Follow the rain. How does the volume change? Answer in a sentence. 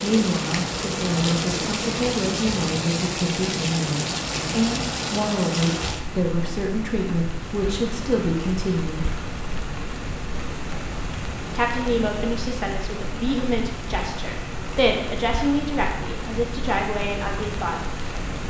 The loudness of the rain goes down.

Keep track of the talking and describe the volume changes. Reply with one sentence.
The loudness of the talking stays about the same.